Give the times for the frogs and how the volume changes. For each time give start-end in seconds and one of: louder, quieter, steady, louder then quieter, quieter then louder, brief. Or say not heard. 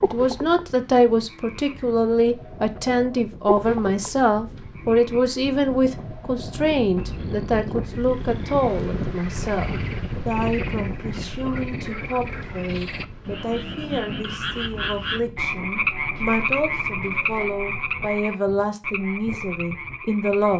0.0-20.5 quieter then louder.